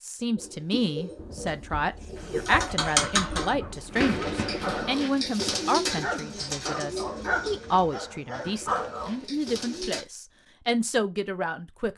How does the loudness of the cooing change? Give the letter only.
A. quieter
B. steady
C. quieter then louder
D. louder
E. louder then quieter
E.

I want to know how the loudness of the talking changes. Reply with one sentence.
The loudness of the talking stays about the same.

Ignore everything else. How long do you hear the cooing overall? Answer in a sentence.
The cooing can be heard for 10 seconds in total.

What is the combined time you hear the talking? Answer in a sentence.
You can hear the talking for 12 seconds altogether.